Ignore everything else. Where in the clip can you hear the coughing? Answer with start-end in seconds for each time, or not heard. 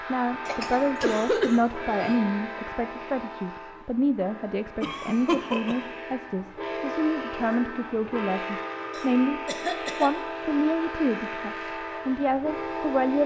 0.5-2.1, 4.8-6.0, 8.9-10.1.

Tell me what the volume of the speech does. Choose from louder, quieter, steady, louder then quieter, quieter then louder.
steady.